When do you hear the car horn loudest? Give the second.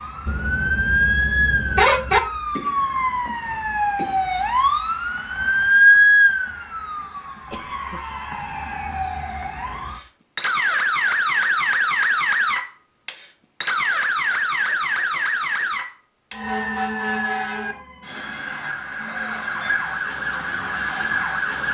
2 s.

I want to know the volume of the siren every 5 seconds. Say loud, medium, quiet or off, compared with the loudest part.
loud, loud, loud, medium, medium.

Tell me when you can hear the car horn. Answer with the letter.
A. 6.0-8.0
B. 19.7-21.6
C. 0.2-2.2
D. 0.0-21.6
C.